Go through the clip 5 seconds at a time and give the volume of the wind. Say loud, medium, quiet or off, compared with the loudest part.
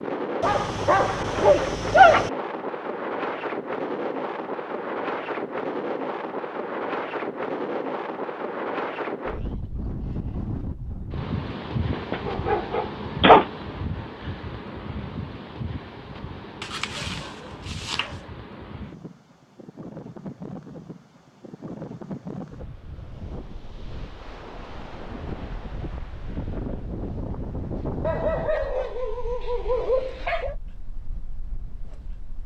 loud, loud, loud, medium, medium, medium, quiet.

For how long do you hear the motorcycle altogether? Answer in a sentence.
You can't hear the motorcycle here.